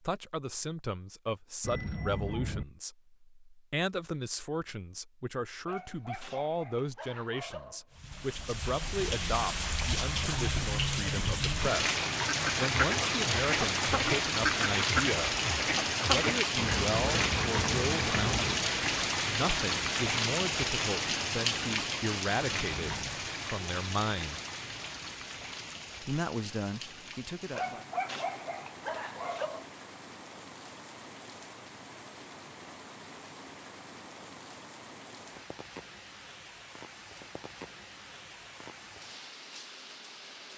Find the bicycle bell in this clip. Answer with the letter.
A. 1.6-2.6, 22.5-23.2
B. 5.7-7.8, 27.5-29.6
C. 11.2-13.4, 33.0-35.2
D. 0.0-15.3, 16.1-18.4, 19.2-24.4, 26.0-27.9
A.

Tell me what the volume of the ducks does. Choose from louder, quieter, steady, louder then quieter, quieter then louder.
steady.